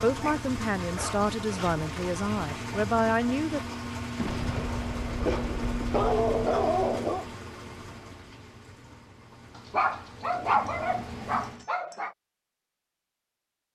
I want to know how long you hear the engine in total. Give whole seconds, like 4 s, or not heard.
12 s.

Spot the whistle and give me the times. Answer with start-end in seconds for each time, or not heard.
not heard.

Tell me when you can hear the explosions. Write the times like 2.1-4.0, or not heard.
4.2-6.7.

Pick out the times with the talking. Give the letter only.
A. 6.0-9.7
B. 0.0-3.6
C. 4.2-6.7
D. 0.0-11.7
B.